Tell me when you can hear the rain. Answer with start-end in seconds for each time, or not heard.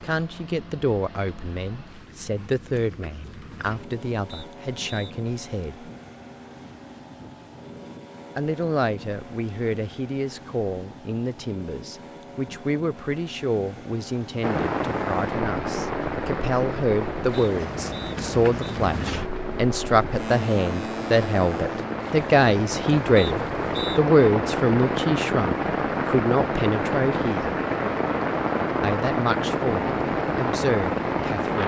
14.4-31.6.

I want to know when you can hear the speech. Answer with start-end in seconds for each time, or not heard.
0.0-5.9, 8.3-27.6, 28.8-31.6.